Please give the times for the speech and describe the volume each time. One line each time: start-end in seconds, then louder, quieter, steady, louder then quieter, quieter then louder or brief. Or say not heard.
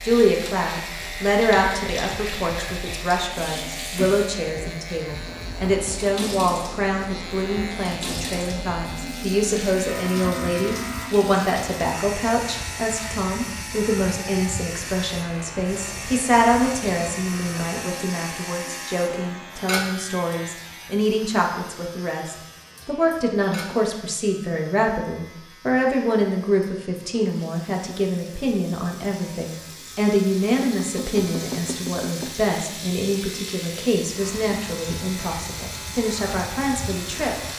0.0-37.4 steady.